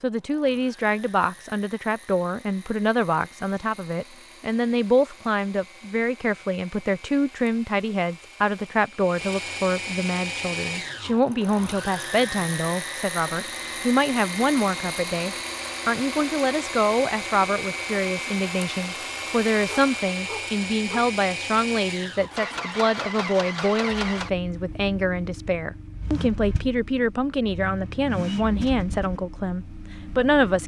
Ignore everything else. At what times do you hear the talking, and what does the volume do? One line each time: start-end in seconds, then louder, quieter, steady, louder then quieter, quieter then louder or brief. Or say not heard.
0.0-30.6 steady.